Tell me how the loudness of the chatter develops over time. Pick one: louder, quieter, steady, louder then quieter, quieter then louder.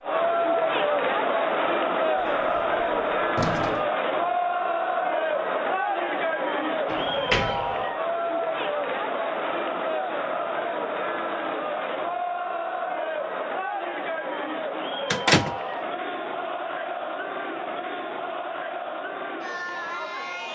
quieter.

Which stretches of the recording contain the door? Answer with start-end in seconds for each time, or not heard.
2.1-3.9, 6.9-7.8, 15.1-15.6.